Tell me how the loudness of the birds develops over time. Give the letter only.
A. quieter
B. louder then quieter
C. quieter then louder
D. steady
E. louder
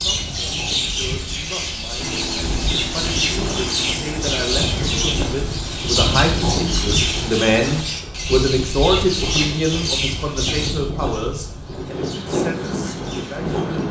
A.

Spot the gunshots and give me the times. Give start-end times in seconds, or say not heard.
not heard.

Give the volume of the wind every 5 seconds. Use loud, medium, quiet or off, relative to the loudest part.
medium, loud, loud.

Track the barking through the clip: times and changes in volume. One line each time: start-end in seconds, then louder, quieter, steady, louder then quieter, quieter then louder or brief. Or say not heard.
not heard.